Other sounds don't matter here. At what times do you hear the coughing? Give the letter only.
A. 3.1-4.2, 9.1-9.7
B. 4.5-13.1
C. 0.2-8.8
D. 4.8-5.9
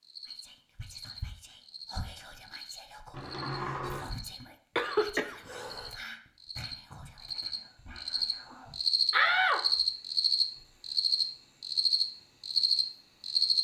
D.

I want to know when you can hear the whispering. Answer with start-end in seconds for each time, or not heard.
0.2-8.8.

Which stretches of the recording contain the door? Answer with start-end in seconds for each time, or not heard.
3.1-4.2, 9.1-9.7.